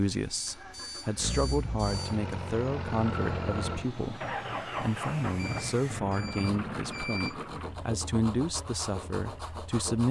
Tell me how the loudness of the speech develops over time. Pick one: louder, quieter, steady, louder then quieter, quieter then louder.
steady.